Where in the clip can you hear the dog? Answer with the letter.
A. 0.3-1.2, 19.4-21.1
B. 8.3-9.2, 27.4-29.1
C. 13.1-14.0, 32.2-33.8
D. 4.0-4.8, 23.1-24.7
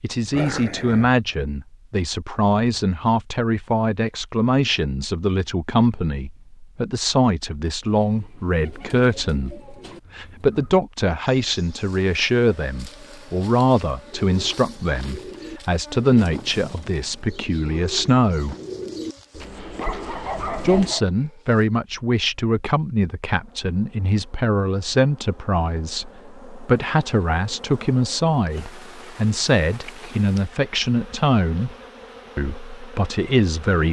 A.